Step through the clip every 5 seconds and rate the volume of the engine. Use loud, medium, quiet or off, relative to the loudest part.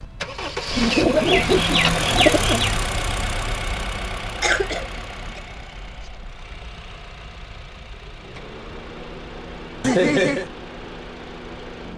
loud, quiet, medium.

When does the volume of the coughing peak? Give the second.
10 s.